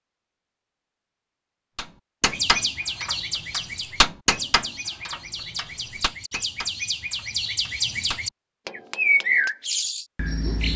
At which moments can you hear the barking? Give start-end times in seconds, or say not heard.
not heard.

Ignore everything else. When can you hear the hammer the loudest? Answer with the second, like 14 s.
4 s.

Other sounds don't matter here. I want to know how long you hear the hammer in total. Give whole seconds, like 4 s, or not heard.
8 s.